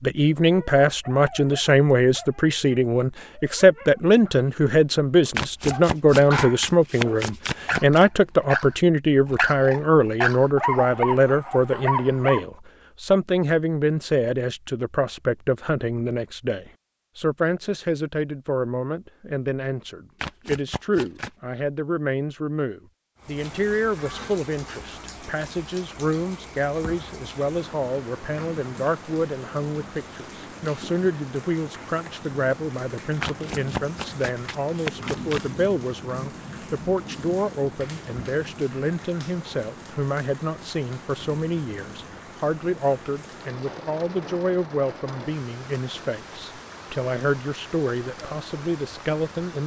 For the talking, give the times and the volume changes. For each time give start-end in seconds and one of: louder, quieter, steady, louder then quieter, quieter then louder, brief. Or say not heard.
0.0-49.6 quieter.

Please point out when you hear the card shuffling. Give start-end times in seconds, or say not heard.
5.3-8.1, 20.2-21.3, 33.2-35.4.